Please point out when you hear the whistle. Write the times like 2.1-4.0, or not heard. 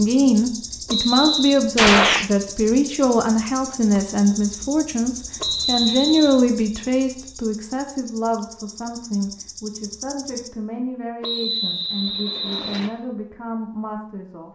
0.8-1.6, 5.4-6.4, 11.2-12.9.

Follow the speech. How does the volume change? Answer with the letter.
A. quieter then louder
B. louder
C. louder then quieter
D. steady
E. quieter
E.